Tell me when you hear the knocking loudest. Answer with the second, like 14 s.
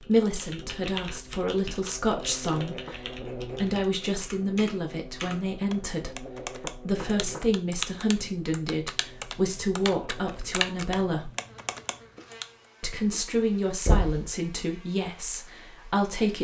14 s.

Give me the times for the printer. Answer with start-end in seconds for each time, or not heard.
not heard.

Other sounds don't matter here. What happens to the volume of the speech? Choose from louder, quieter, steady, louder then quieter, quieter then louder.
steady.